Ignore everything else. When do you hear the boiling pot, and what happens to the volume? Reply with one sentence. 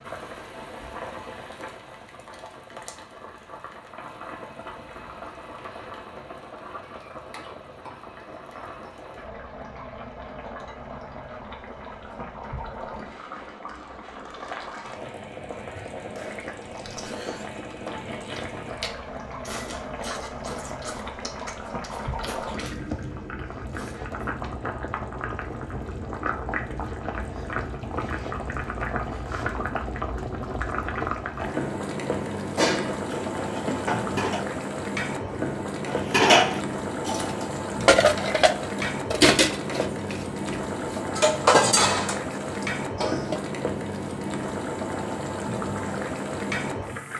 You can hear the boiling pot from 0.0 to 47.1 s, getting louder.